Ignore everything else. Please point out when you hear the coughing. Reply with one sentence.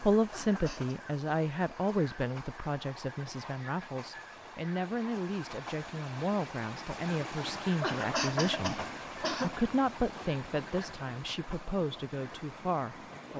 You can hear the coughing from 0.3 to 0.9 s and from 7.8 to 9.6 s.